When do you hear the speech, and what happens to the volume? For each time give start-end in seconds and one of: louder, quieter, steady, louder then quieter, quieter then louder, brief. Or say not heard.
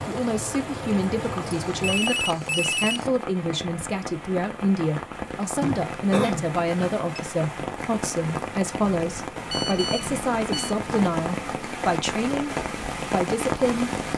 0.1-13.9 steady.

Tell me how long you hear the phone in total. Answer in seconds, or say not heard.
4 s.